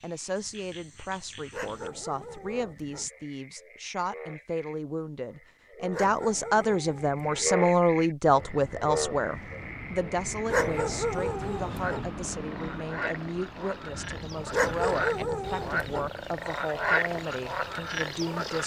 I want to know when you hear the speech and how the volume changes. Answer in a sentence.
The speech can be heard from 0.0 to 18.6 s, getting louder then quieter.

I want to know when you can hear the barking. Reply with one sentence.
The barking can be heard from 1.5 to 3.1 s, from 5.9 to 7.5 s, from 10.4 to 12.1 s and from 14.5 to 16.1 s.